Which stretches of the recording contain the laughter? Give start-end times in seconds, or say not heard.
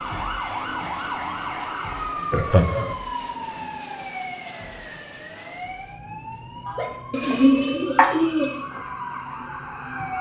2.3-3.0, 6.7-8.2.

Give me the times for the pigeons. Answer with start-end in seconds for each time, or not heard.
7.1-8.6.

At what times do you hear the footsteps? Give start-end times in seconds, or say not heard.
not heard.